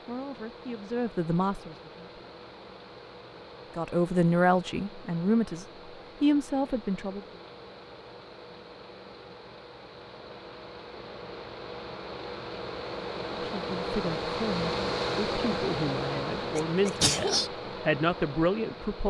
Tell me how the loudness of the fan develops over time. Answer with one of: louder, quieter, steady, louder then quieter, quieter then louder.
louder.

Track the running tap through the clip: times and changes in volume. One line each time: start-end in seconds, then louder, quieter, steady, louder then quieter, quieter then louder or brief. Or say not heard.
not heard.